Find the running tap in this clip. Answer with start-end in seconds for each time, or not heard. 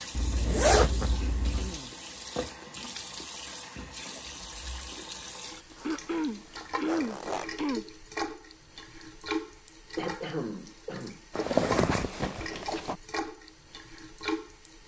0.0-14.8.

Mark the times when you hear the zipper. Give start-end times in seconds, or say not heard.
0.1-1.8, 5.8-7.5, 11.3-12.9.